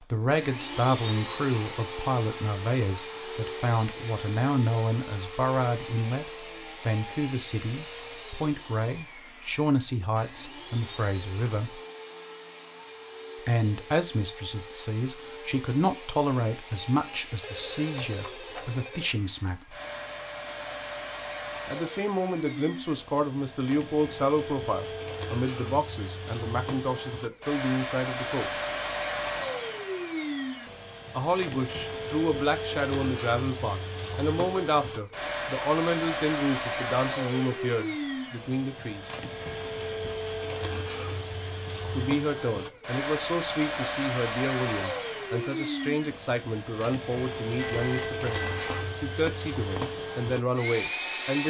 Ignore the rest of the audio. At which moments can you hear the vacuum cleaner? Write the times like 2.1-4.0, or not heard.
0.0-51.4.